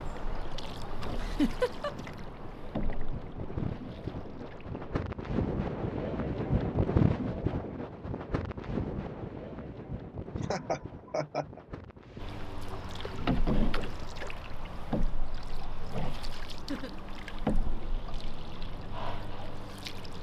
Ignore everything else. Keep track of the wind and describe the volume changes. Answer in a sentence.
The volume of the wind goes up, then down.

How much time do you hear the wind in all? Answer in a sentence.
You can hear the wind for 14 seconds altogether.